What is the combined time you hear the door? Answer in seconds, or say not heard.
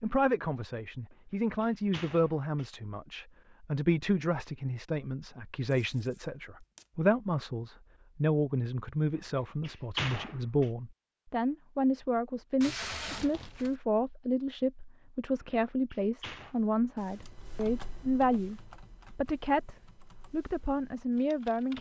4 s.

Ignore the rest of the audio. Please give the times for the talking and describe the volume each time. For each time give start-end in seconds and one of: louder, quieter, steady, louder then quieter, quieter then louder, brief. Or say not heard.
0.0-21.7 steady.